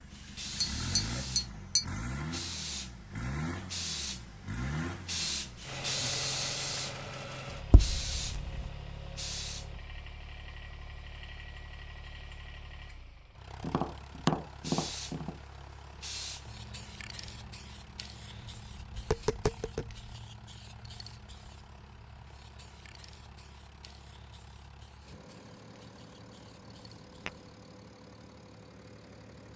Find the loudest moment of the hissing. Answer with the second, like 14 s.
6 s.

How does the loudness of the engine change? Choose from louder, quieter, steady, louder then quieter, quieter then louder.
quieter.